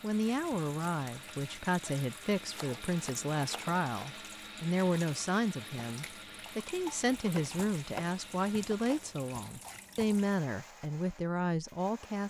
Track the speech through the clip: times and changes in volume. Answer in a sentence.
You can hear the speech from 0.0 to 12.2 s, at a steady volume.